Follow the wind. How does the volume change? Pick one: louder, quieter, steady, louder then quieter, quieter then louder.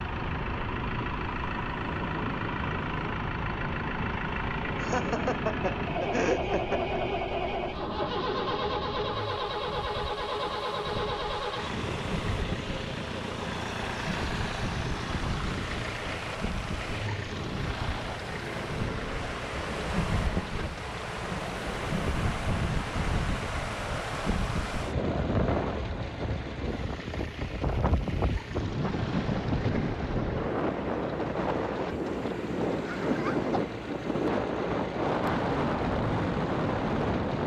louder.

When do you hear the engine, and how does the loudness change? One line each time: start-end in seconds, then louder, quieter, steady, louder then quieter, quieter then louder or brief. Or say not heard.
0.0-37.4 quieter.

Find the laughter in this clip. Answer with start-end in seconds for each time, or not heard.
4.8-6.8, 32.8-33.6.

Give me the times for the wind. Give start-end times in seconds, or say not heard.
0.0-37.4.